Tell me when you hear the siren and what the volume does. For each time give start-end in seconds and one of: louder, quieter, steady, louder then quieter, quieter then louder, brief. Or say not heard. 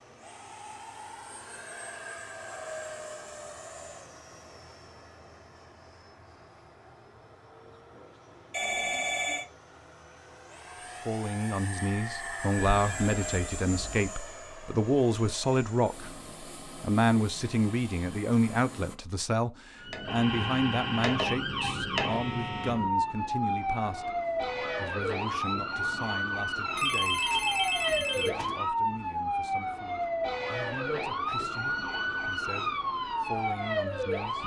19.8-34.4 steady.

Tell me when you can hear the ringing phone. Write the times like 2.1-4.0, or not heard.
8.5-9.4, 12.6-14.1, 26.8-28.6.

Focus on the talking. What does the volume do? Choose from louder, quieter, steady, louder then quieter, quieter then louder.
quieter.